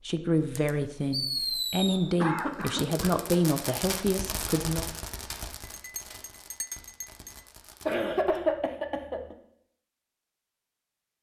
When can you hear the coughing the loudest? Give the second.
8 s.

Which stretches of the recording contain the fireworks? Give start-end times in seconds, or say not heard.
0.6-8.4.